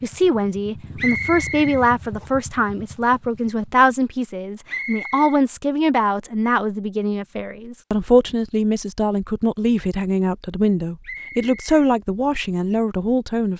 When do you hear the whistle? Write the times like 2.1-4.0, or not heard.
0.9-2.2, 4.7-5.3, 11.0-11.8.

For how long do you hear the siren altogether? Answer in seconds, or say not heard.
not heard.